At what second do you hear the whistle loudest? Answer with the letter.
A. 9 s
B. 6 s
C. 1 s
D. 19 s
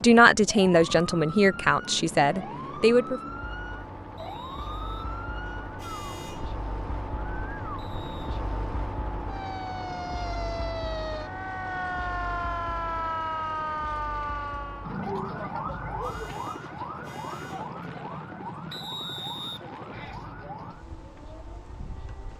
D.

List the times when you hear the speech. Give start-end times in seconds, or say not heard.
0.0-3.2.